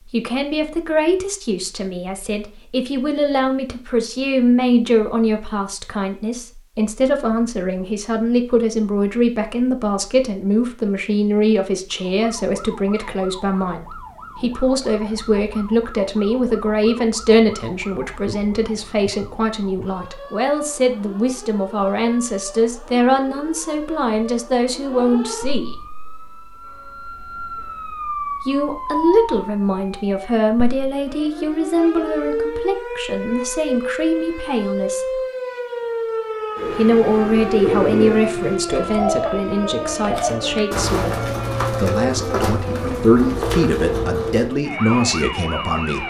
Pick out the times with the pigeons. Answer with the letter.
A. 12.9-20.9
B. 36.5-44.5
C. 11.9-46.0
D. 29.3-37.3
B.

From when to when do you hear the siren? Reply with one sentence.
You can hear the siren from 11.9 to 46.0 s.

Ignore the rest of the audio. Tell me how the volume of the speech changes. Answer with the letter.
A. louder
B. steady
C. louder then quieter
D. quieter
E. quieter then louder
B.